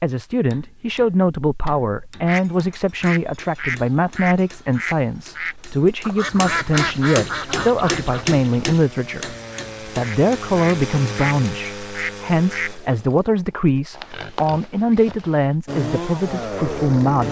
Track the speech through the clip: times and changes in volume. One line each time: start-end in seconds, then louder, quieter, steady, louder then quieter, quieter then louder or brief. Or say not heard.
0.0-17.2 steady.